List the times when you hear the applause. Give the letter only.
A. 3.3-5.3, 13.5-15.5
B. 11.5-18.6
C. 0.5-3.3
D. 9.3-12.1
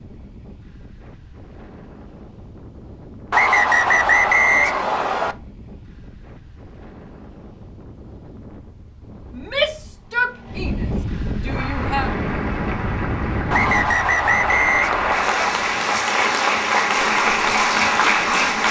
B.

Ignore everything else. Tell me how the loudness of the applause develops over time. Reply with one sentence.
The loudness of the applause goes up.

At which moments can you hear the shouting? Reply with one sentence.
You can hear the shouting from 9.3 to 12.1 s.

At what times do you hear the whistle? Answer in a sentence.
The whistle can be heard from 3.3 to 5.3 s and from 13.5 to 15.5 s.